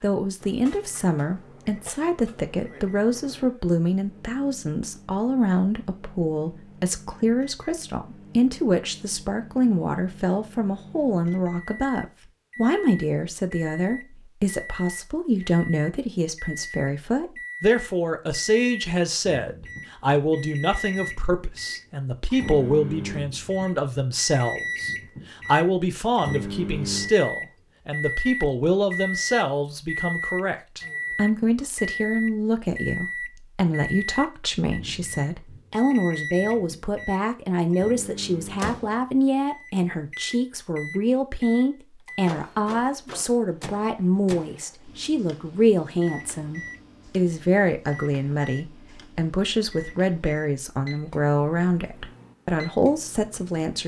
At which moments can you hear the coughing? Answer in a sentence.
The coughing can't be heard in this clip.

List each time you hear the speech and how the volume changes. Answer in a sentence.
You can hear the speech from 0.0 to 53.8 s, at a steady volume.